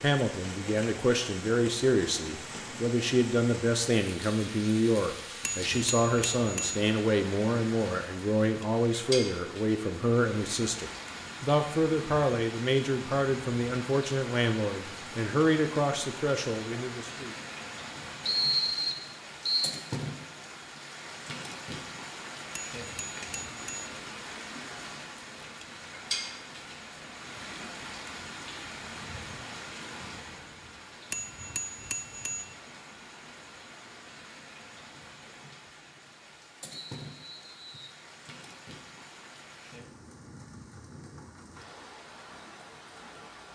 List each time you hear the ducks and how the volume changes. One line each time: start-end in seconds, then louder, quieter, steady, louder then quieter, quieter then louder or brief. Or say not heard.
not heard.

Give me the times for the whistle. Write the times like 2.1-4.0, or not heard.
18.2-19.8, 36.7-38.0.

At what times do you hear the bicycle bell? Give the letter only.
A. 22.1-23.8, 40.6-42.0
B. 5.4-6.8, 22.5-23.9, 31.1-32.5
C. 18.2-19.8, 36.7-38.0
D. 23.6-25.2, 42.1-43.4
B.